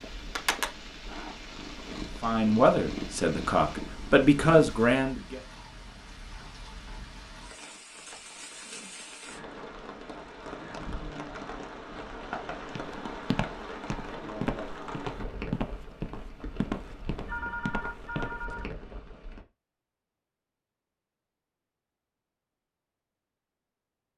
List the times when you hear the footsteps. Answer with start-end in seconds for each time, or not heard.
12.7-18.4.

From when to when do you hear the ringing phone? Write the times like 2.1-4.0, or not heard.
17.2-18.7.